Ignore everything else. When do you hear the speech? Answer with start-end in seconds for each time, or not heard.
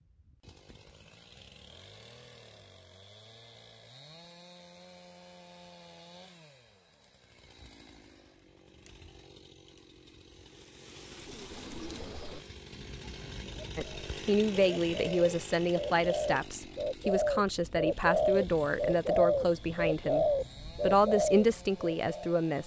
13.8-22.6.